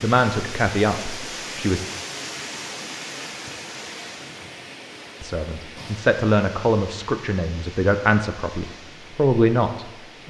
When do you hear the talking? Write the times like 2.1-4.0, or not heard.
0.0-1.8, 5.2-10.2.